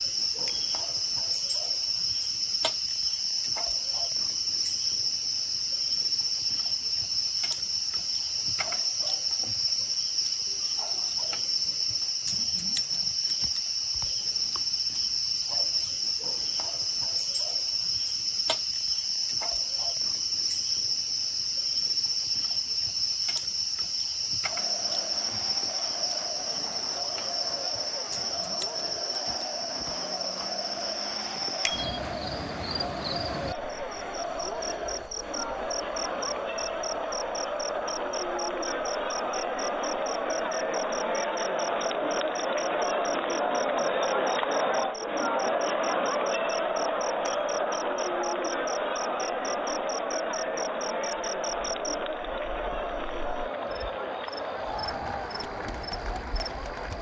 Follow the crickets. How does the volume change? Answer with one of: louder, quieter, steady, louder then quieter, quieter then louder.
quieter.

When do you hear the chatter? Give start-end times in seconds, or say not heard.
24.5-56.9.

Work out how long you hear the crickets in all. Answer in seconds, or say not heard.
57 s.